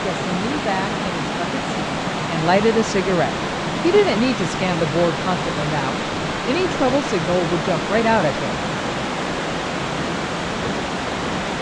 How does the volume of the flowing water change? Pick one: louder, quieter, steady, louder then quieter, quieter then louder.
steady.